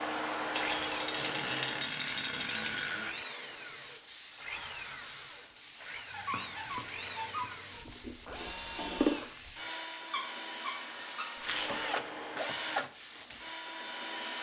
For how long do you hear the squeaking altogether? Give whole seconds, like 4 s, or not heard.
5 s.